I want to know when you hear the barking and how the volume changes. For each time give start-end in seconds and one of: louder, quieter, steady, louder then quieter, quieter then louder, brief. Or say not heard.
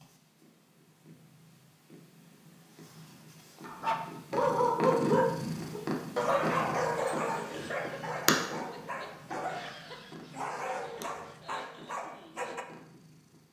3.6-12.7 quieter.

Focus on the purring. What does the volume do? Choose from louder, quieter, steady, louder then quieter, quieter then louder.
louder then quieter.